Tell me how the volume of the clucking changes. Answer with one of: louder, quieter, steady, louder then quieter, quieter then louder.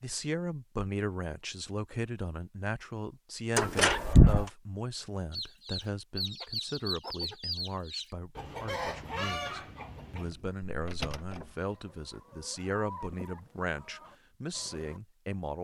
quieter.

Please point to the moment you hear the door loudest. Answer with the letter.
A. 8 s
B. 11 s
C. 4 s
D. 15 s
C.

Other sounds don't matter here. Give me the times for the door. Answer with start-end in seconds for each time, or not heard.
3.5-4.5, 9.7-11.5.